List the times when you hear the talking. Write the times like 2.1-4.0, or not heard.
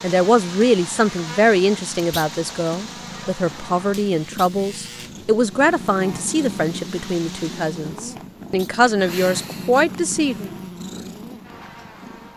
0.0-10.5.